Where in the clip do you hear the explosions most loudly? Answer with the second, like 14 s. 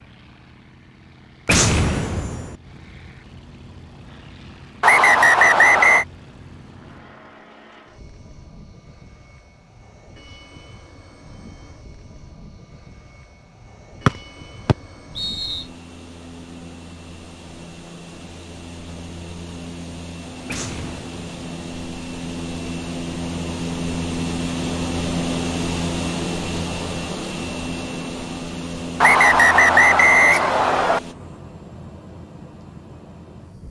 2 s.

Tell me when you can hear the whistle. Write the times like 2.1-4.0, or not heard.
4.8-6.0, 14.1-15.7, 29.0-31.0.